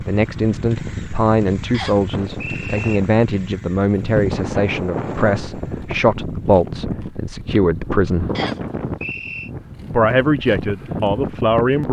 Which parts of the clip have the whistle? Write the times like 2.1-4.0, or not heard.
1.7-3.0, 8.3-9.5.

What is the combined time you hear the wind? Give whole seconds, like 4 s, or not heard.
12 s.